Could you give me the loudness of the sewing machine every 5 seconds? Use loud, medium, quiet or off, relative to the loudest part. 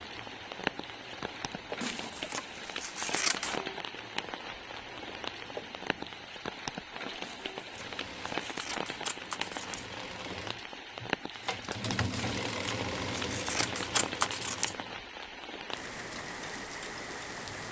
medium, medium, loud, medium.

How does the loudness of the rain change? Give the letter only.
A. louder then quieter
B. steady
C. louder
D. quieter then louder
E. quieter
B.